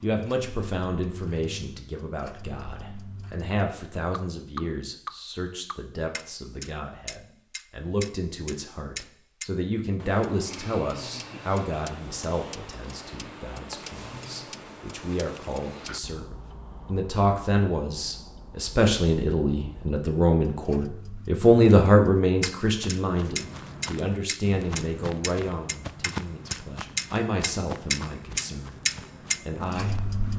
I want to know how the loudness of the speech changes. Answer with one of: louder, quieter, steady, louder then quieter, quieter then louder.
louder then quieter.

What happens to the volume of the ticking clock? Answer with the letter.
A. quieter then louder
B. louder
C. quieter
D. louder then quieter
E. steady
A.